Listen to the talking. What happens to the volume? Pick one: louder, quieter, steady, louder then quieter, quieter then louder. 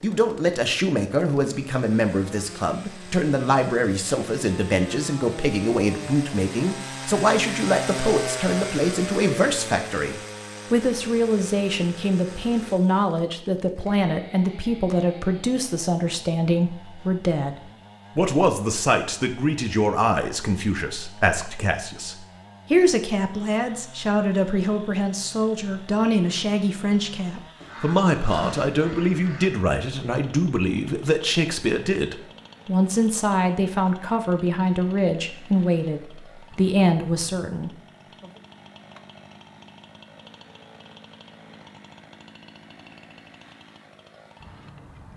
steady.